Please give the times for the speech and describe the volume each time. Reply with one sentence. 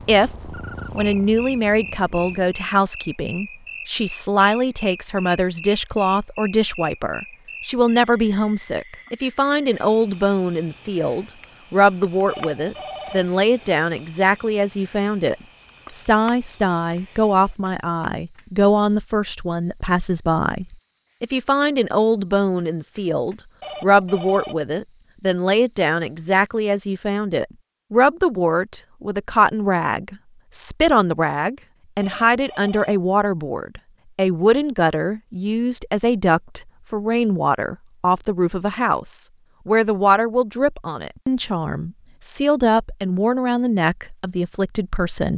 The speech can be heard from 0.1 to 45.3 s, at a steady volume.